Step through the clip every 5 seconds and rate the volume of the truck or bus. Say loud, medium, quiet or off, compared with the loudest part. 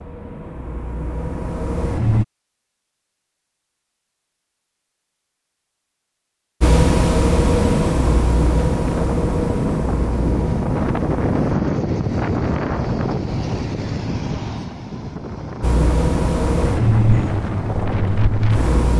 medium, loud, medium, loud.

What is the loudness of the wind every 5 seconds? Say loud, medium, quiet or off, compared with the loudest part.
off, loud, loud, medium.